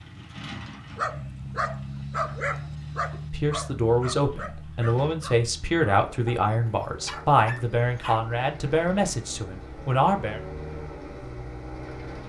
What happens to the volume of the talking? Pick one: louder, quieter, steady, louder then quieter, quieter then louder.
steady.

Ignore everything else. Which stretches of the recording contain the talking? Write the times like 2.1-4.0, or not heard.
3.1-10.4.